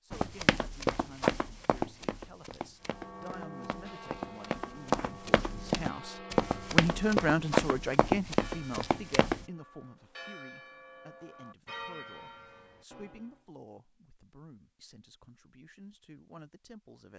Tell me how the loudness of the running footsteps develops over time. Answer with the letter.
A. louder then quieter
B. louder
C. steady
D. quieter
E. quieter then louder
E.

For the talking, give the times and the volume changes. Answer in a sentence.
You can hear the talking from 0.0 to 17.1 s, getting louder then quieter.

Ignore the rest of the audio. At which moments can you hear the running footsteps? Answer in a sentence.
You can hear the running footsteps from 0.1 to 9.4 s.